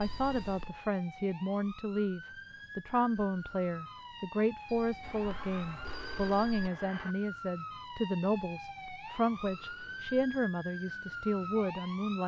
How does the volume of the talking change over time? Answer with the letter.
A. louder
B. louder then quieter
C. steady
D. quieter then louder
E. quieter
C.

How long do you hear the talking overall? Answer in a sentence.
The talking can be heard for 12 seconds in total.